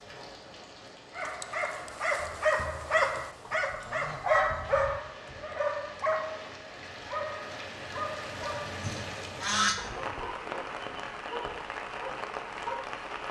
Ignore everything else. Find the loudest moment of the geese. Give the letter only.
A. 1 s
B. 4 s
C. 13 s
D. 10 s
D.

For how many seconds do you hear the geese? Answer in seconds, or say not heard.
3 s.